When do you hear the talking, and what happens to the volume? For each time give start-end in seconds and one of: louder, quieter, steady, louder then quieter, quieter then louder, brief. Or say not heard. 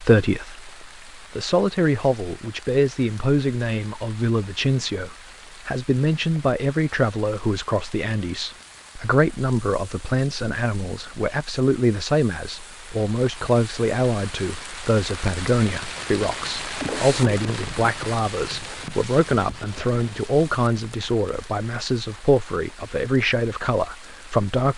0.0-24.7 steady.